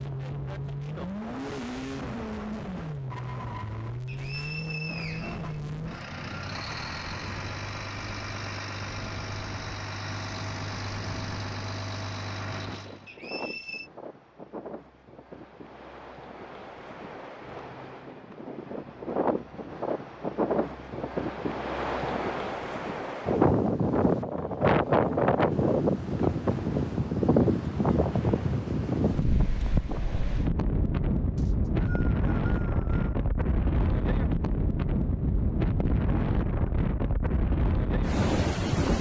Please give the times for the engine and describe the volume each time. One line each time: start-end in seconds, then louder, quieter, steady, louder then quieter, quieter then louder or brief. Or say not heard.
0.0-13.1 steady.